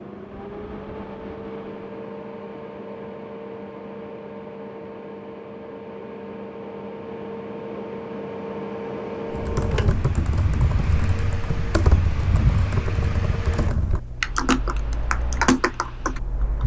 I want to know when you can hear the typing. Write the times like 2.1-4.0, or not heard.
9.3-16.6.